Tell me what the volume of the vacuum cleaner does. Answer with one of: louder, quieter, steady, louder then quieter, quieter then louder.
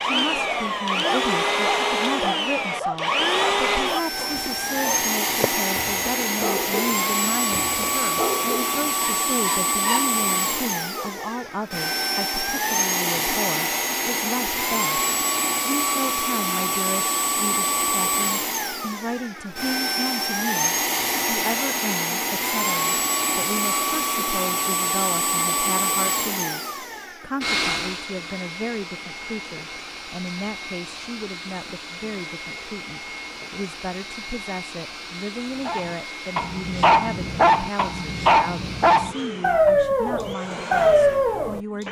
quieter.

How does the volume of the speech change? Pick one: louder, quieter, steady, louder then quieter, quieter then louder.
steady.